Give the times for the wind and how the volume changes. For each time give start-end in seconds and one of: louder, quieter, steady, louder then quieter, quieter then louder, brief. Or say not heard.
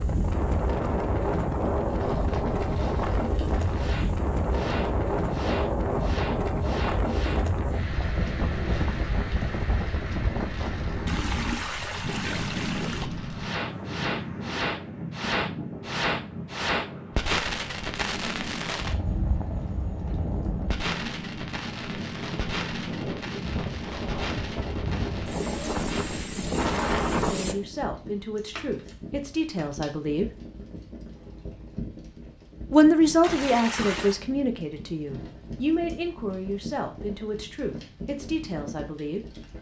0.0-27.6 quieter then louder.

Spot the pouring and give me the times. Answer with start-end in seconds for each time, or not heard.
11.1-13.1, 33.2-34.2.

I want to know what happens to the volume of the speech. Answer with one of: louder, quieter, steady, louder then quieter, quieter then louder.
louder then quieter.